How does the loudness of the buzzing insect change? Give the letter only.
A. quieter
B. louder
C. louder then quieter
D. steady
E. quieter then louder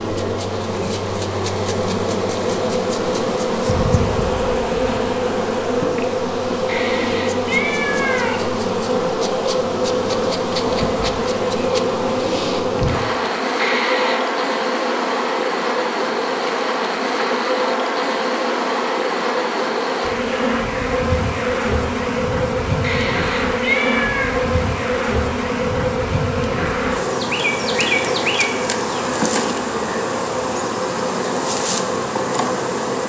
D.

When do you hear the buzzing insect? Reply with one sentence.
The buzzing insect can be heard from 0.0 to 33.0 s.